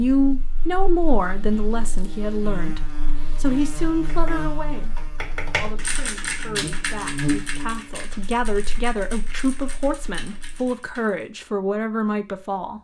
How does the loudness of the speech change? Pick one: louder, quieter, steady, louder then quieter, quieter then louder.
quieter then louder.